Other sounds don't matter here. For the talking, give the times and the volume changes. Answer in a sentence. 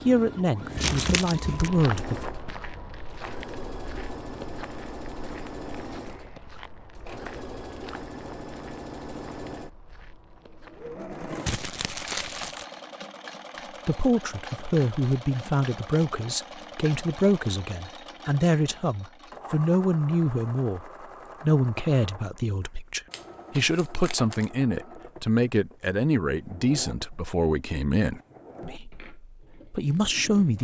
You can hear the talking briefly from 0.1 to 2.3 s; and from 13.8 to 30.6 s, at a steady volume.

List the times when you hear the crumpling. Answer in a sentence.
The crumpling can be heard from 0.8 to 1.7 s, from 11.4 to 12.7 s and from 23.1 to 24.5 s.